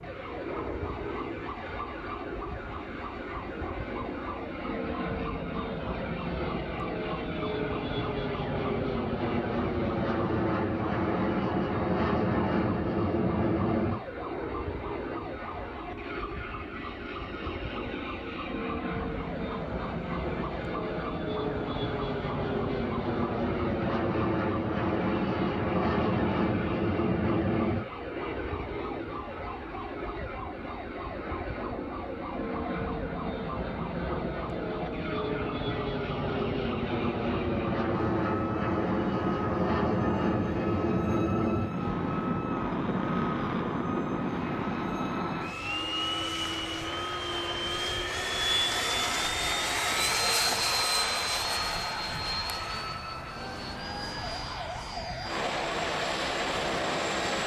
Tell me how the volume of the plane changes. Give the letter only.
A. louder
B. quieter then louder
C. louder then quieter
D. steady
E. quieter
D.